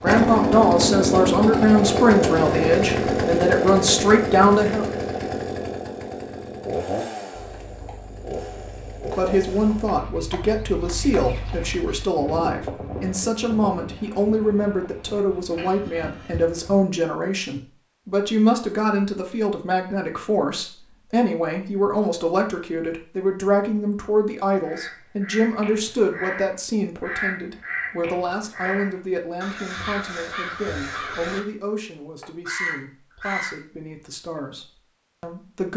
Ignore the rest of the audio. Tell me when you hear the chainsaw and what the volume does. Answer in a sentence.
The chainsaw can be heard from 0.0 to 9.9 s, getting quieter.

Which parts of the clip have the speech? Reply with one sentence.
You can hear the speech from 0.0 to 4.8 s and from 9.2 to 35.7 s.